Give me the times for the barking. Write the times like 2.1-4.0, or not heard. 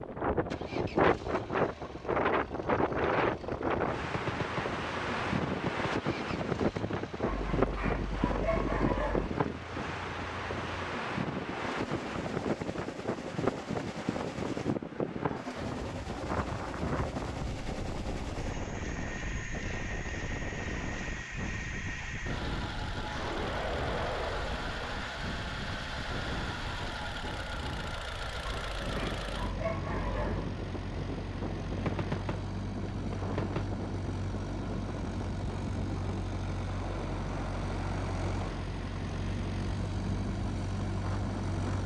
7.2-9.3, 28.4-30.4.